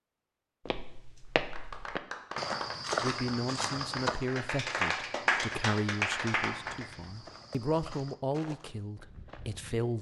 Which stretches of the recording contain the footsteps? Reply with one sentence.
The footsteps can be heard from 0.7 to 9.8 s.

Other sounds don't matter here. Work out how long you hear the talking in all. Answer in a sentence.
You can hear the talking for 7 seconds altogether.